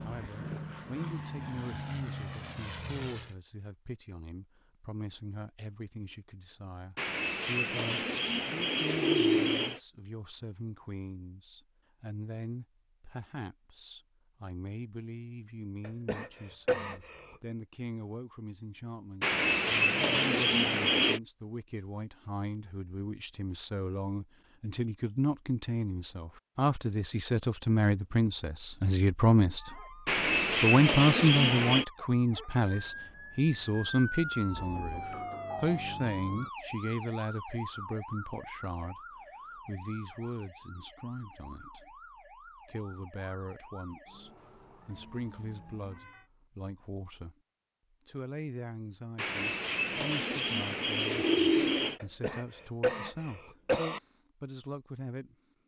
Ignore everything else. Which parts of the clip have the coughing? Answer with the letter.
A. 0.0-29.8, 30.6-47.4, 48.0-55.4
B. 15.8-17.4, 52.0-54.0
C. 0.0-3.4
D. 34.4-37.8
B.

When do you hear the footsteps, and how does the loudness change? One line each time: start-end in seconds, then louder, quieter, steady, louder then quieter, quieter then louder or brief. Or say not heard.
not heard.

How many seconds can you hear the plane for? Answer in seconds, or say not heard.
3 s.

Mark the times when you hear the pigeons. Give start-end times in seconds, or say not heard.
7.0-9.8, 19.2-21.2, 30.1-31.9, 49.1-52.0.